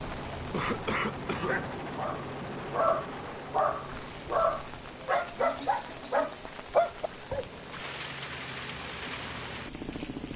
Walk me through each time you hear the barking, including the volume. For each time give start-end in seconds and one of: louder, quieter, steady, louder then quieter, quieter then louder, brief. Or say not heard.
1.3-7.5 louder.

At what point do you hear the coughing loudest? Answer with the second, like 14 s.
1 s.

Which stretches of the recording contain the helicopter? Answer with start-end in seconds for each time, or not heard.
0.0-10.3.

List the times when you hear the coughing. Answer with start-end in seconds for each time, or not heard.
0.5-1.7, 5.3-6.3.